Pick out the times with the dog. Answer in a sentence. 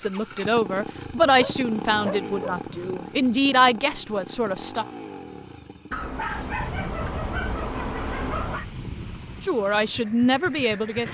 The dog can be heard from 1.2 to 2.6 s and from 5.9 to 8.7 s.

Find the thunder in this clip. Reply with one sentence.
The thunder can be heard from 6.3 to 9.4 s.